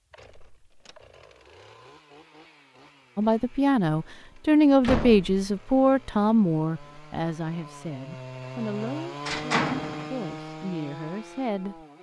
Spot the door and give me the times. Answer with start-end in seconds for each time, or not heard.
0.2-1.0, 4.8-5.5, 9.2-10.1.